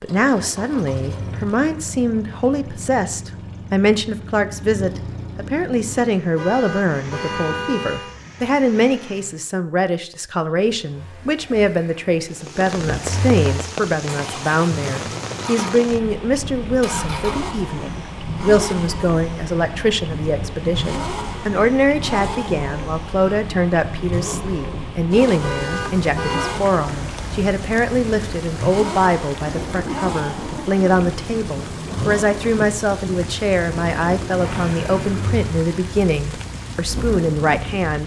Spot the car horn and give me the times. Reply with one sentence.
The car horn can be heard from 6.3 to 8.2 s and from 25.4 to 26.6 s.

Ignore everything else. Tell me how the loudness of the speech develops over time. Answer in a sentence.
The loudness of the speech stays about the same.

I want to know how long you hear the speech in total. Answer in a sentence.
You can hear the speech for 38 seconds altogether.